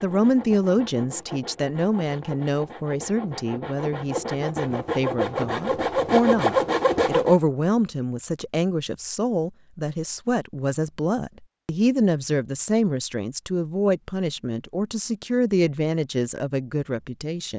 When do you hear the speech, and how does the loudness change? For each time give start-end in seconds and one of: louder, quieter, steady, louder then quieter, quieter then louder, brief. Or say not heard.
0.0-17.5 steady.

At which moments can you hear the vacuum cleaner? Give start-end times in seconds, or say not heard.
not heard.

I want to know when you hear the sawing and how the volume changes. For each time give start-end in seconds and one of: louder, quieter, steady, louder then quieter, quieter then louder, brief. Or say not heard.
0.0-7.3 louder.